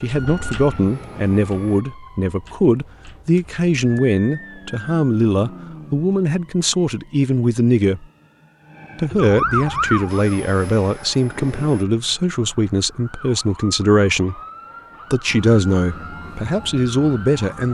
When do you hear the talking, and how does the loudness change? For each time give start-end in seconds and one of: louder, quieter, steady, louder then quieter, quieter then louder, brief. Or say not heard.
0.0-8.1 steady
8.9-14.4 steady
15.1-17.6 brief.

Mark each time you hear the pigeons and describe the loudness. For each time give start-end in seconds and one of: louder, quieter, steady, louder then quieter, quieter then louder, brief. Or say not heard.
not heard.